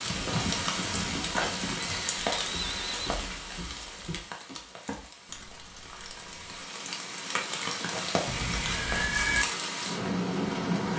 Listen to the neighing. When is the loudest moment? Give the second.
9 s.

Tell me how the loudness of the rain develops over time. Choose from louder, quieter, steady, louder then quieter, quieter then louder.
quieter then louder.